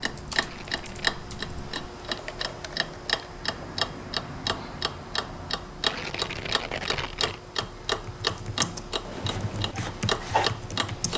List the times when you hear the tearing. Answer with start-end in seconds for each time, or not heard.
0.3-1.1, 5.8-7.4.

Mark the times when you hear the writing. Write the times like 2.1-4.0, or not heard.
9.1-11.1.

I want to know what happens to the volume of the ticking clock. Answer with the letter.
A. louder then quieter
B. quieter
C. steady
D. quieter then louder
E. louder
C.